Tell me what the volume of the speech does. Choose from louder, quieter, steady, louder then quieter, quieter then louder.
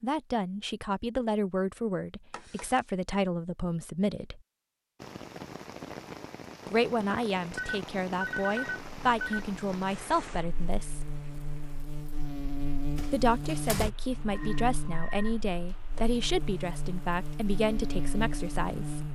steady.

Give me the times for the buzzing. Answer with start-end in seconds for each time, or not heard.
8.9-19.1.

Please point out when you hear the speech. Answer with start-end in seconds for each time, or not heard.
0.0-4.4, 6.7-11.1, 13.1-19.1.